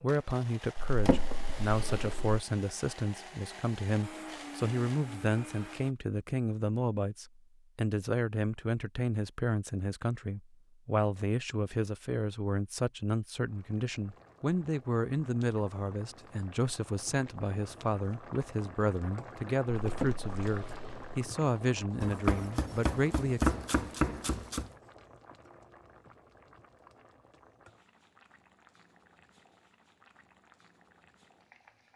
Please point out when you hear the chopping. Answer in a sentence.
You can hear the chopping from 22.0 to 24.7 s.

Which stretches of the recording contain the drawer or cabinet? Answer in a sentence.
You can hear the drawer or cabinet from 0.8 to 2.5 s and from 19.8 to 21.2 s.